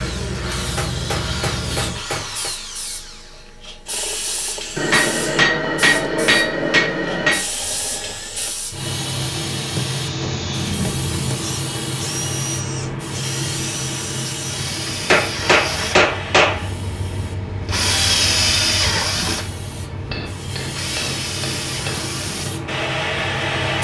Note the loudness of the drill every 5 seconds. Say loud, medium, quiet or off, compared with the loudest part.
medium, medium, medium, loud, medium.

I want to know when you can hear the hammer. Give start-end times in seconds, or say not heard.
0.8-2.5, 4.8-7.5, 9.7-11.6, 14.8-16.6, 19.9-22.1.